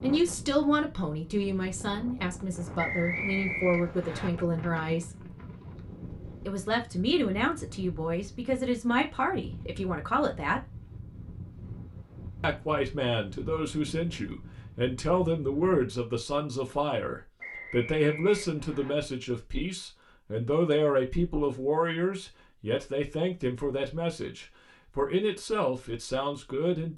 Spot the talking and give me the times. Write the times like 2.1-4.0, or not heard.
0.0-5.2, 6.5-10.6, 12.4-26.9.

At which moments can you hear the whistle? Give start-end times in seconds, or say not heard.
2.8-4.3, 17.4-18.9.